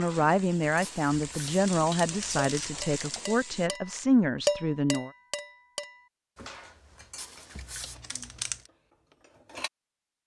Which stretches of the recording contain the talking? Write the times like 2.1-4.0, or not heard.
0.0-5.1.